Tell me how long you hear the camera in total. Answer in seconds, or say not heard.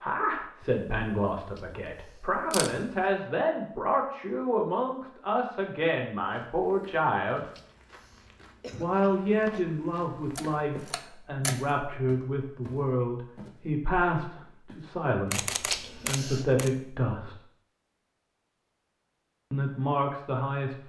5 s.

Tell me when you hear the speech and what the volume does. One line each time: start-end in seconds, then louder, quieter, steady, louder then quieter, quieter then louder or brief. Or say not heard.
0.0-7.5 steady
8.8-17.4 steady
19.5-20.8 brief.